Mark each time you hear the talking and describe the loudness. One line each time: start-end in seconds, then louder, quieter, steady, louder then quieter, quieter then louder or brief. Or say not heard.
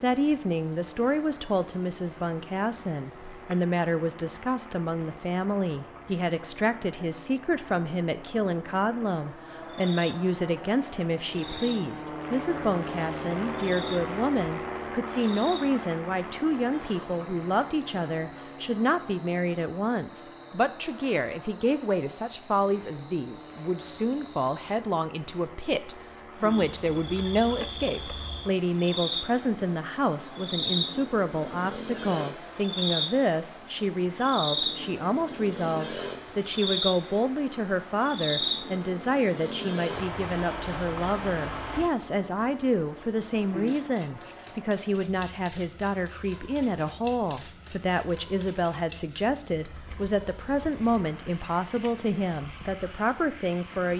0.0-53.9 steady.